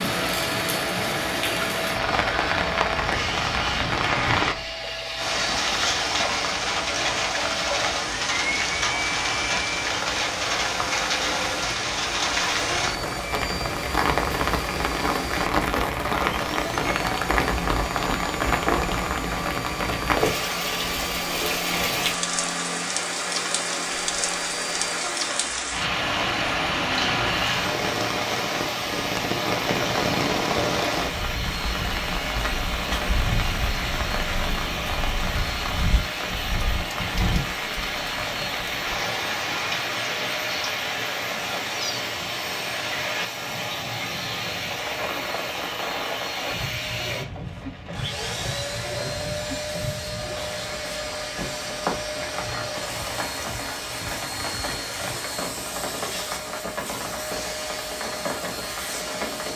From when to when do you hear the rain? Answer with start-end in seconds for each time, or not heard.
0.0-59.5.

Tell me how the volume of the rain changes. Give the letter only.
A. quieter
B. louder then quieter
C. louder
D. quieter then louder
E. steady
A.